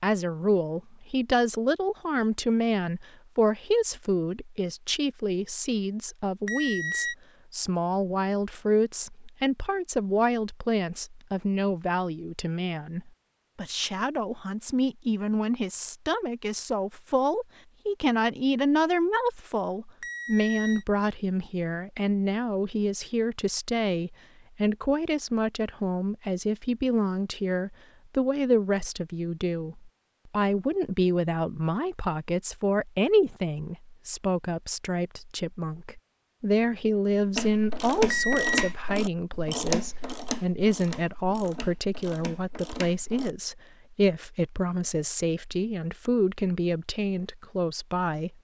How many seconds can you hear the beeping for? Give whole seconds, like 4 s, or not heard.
2 s.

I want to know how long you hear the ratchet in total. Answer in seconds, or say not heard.
6 s.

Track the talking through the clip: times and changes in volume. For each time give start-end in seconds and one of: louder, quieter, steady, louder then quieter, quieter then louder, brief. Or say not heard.
0.0-48.3 steady.